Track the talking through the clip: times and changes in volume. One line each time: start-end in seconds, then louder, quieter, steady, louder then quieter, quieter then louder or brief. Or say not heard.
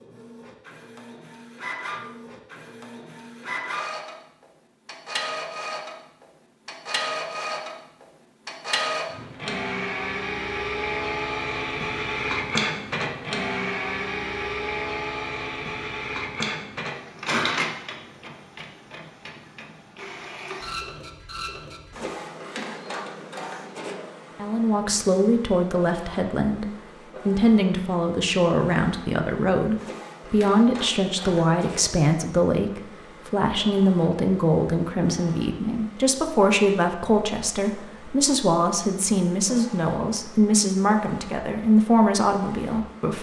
24.4-43.1 steady.